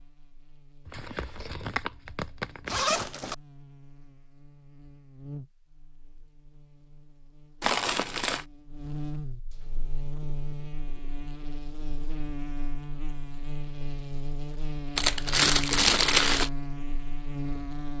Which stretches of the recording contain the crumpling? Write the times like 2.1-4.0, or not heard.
0.8-2.8, 7.6-8.4, 14.9-16.5.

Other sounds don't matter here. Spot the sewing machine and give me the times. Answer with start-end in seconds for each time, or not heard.
not heard.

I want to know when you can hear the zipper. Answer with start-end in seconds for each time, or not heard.
2.6-3.4.